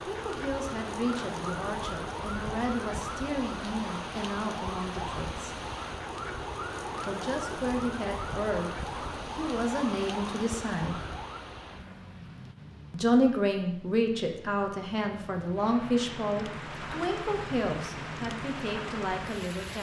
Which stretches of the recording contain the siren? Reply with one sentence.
The siren can be heard from 0.1 to 11.4 s.